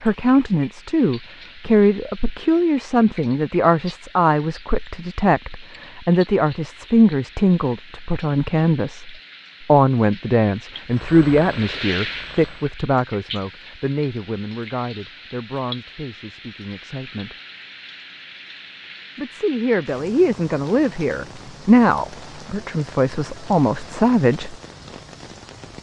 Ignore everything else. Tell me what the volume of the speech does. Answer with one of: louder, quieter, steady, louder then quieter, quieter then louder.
quieter then louder.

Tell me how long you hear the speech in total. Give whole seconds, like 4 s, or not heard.
23 s.